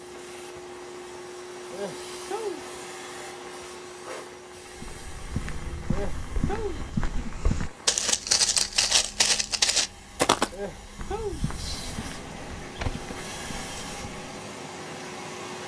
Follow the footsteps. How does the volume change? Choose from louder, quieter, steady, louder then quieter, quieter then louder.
louder then quieter.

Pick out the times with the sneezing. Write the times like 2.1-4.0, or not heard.
1.7-2.6, 5.9-6.8, 10.5-11.4.